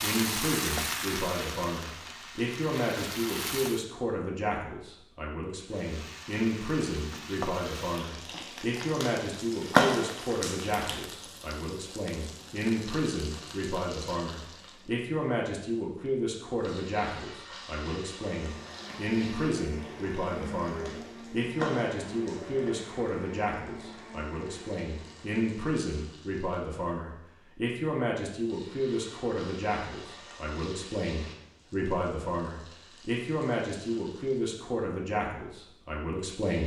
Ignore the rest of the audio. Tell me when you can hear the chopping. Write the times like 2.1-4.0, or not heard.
not heard.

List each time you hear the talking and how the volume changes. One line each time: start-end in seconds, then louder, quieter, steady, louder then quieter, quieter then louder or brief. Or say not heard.
0.0-36.6 steady.